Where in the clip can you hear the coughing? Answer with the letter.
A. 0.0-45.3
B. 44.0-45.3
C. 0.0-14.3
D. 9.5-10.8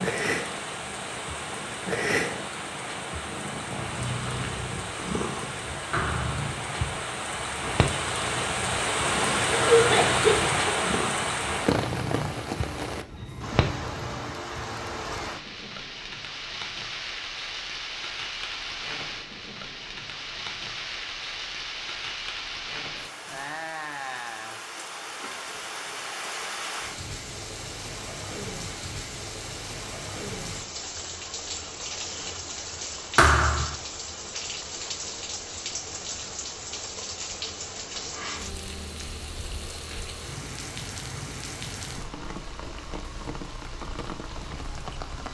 D.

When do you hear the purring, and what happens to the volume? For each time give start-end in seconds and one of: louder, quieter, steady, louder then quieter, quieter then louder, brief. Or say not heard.
0.0-14.3 steady.